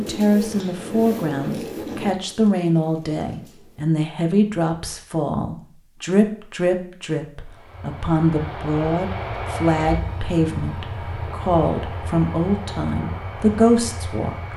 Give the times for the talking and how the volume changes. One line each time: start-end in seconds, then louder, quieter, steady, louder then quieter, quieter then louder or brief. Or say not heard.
0.0-14.5 steady.